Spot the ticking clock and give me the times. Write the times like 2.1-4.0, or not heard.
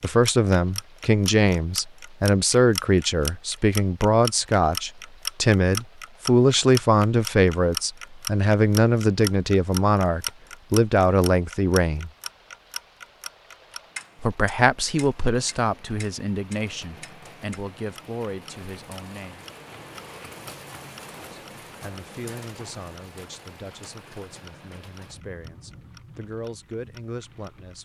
0.0-27.8.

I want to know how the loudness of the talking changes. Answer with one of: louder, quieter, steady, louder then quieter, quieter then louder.
quieter.